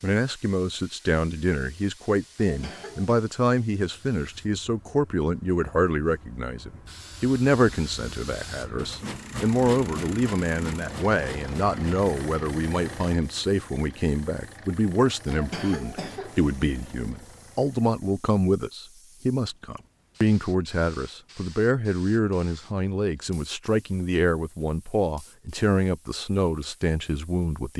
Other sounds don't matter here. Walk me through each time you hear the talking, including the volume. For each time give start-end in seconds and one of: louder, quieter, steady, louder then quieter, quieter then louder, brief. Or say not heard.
0.0-27.7 steady.